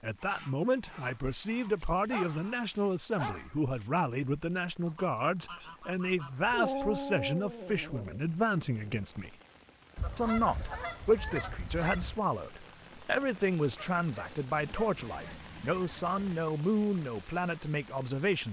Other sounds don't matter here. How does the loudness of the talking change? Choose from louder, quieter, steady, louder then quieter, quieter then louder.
steady.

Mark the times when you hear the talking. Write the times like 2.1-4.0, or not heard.
0.0-9.3, 10.2-18.4.